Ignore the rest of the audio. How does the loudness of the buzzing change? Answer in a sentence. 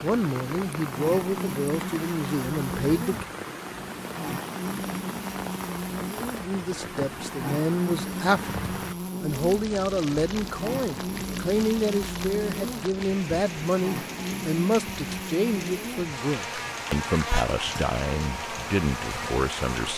The volume of the buzzing stays about the same.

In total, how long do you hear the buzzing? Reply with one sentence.
The buzzing can be heard for 20 seconds in total.